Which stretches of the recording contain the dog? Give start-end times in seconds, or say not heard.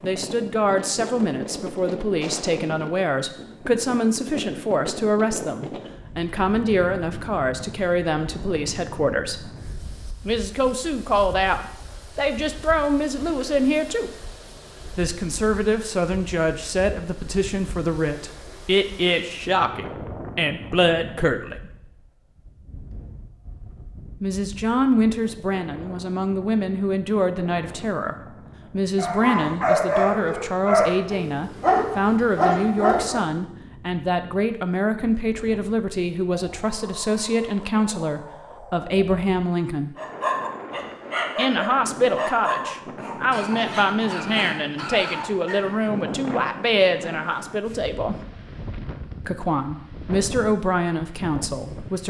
28.9-33.2, 40.0-45.8.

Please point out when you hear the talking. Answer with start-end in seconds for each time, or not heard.
0.0-9.5, 10.2-14.2, 14.9-21.7, 24.2-40.0, 41.4-48.2, 49.2-52.0.